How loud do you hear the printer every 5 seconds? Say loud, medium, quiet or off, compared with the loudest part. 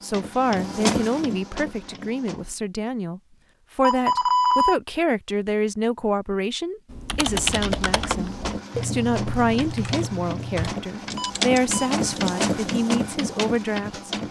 loud, medium, loud.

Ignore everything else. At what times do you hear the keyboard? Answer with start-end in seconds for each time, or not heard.
6.8-12.4.